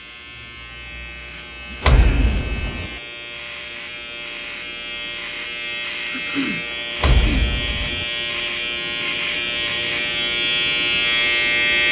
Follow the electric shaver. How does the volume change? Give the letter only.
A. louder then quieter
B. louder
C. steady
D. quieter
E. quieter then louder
B.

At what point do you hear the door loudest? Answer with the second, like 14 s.
2 s.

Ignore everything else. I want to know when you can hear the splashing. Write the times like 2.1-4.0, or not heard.
not heard.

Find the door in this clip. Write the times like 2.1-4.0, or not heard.
1.8-2.9, 7.0-8.1.